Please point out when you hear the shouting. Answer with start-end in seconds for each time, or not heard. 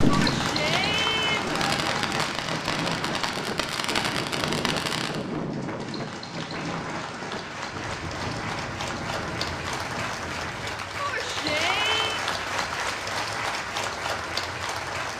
0.1-1.6, 10.9-12.2.